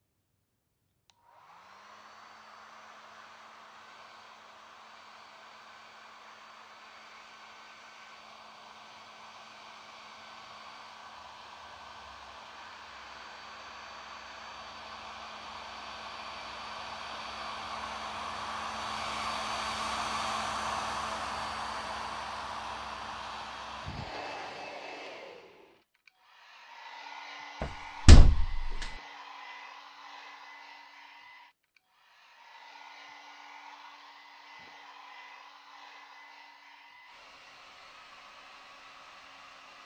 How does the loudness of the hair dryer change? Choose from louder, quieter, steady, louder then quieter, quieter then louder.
louder then quieter.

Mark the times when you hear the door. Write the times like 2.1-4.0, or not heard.
27.6-28.9.